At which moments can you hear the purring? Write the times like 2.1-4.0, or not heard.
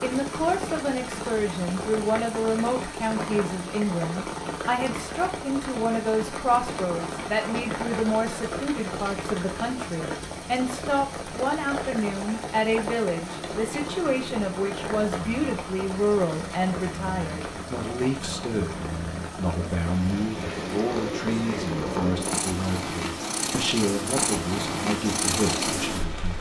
13.2-26.3.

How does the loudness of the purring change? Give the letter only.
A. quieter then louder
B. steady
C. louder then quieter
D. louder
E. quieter
D.